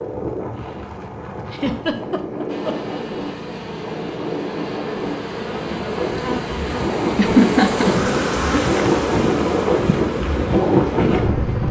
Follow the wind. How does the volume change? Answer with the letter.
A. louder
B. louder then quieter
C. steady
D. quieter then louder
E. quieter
A.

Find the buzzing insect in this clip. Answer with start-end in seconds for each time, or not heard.
2.5-11.6.